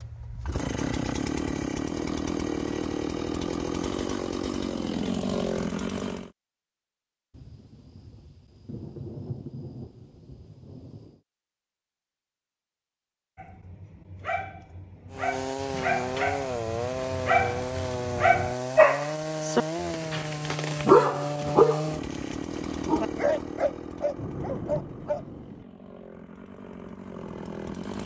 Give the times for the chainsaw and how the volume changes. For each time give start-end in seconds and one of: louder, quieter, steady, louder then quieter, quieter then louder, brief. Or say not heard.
0.0-6.3 steady
15.1-28.0 quieter.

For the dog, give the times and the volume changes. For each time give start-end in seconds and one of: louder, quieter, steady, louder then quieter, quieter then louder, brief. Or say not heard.
13.3-25.2 louder then quieter.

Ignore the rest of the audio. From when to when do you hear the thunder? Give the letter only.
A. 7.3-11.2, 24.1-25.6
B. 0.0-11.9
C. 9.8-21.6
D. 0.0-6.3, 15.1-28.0
A.